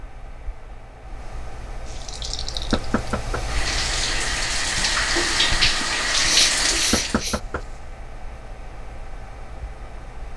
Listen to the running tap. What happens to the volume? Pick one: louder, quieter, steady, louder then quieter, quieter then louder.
louder.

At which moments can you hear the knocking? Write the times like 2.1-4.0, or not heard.
2.7-3.5, 6.9-7.7.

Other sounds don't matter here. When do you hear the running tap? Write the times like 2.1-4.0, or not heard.
1.9-7.2.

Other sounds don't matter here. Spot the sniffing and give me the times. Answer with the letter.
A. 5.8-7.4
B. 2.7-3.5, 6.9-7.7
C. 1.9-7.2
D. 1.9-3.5
A.